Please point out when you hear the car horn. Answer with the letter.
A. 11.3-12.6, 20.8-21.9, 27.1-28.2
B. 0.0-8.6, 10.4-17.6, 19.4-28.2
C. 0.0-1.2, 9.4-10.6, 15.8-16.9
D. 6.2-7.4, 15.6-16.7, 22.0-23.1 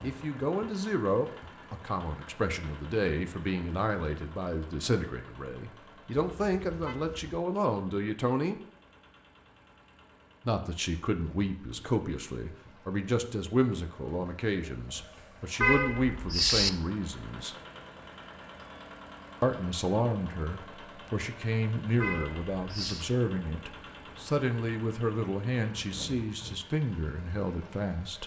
D.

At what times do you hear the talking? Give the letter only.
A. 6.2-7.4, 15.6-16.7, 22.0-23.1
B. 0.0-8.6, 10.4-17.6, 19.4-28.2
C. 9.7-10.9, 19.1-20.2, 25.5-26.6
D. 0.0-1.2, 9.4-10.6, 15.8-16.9
B.